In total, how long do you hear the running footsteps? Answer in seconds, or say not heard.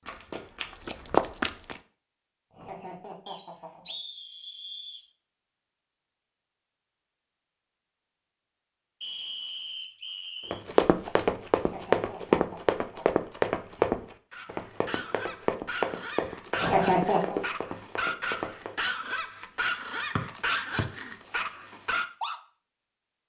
10 s.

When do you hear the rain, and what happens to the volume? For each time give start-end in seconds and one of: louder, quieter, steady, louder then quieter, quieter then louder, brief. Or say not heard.
not heard.